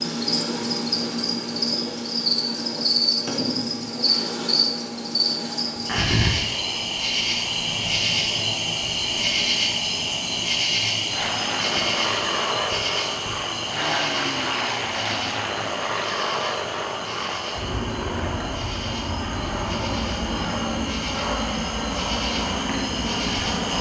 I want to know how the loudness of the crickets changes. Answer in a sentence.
The volume of the crickets goes down.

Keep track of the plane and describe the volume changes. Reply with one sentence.
The volume of the plane stays about the same.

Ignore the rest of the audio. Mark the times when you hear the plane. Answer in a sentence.
You can hear the plane from 11.1 to 23.7 s.